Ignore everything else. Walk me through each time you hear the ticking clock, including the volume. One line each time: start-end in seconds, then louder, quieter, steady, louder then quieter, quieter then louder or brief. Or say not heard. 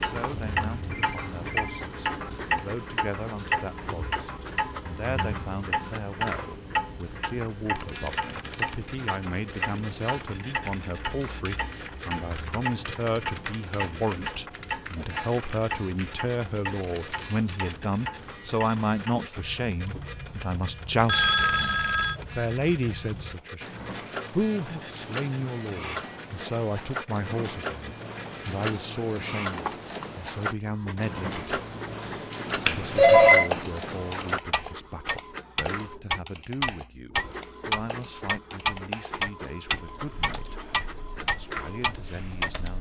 0.0-42.5 quieter then louder.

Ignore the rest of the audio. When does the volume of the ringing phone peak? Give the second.
33 s.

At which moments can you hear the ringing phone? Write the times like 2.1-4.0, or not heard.
0.4-2.3, 21.1-22.1, 32.6-33.5.